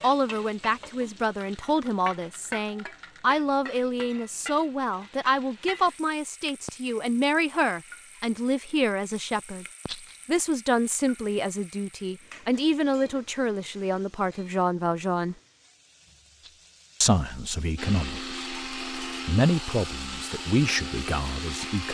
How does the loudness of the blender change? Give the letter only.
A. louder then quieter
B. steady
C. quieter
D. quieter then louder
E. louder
B.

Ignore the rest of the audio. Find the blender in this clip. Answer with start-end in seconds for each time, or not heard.
17.8-21.8.